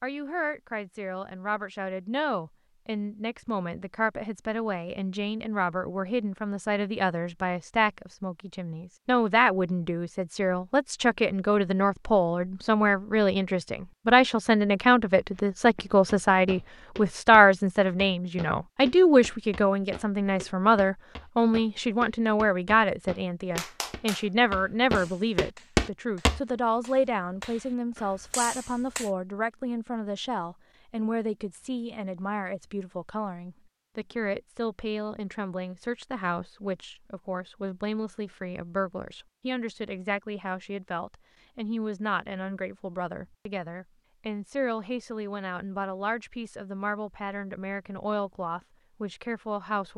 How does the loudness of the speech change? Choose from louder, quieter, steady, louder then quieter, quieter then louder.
louder then quieter.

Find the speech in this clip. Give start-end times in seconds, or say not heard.
0.0-49.9.